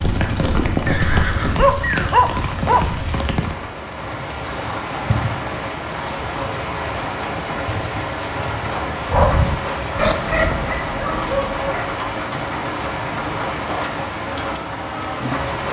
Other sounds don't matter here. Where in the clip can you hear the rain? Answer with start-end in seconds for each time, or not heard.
0.0-15.6.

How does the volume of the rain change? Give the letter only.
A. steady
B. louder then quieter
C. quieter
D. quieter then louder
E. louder
A.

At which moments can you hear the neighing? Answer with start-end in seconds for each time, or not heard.
0.8-2.1.